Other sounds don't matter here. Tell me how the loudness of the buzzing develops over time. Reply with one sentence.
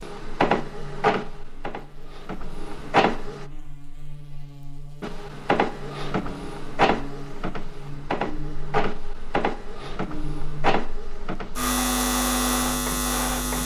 The loudness of the buzzing goes up.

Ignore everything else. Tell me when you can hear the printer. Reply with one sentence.
The printer can be heard from 0.0 to 3.5 s and from 5.0 to 13.6 s.